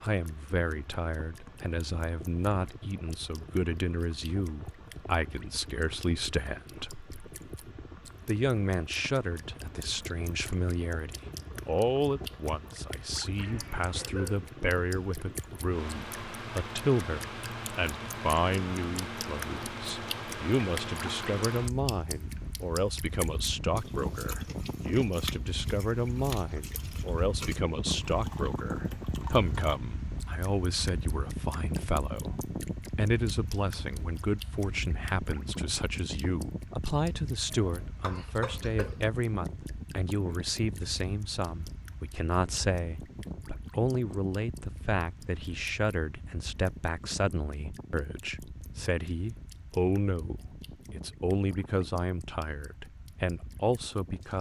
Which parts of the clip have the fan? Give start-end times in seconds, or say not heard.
0.0-54.3.